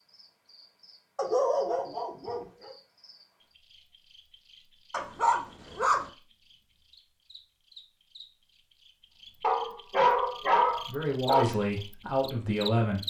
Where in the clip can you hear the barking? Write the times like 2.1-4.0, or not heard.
1.1-2.8, 4.9-6.1, 9.4-11.4.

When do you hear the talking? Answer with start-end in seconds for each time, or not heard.
10.8-13.0.